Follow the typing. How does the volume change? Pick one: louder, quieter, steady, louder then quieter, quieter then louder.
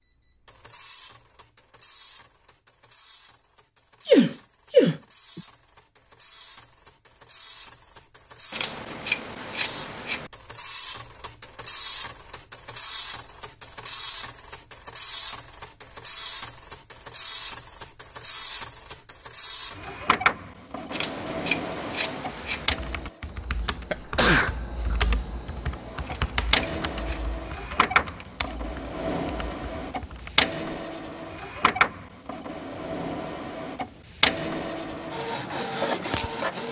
louder then quieter.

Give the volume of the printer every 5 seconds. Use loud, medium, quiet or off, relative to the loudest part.
quiet, quiet, medium, medium, loud, loud, loud, loud.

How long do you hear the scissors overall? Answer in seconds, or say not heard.
5 s.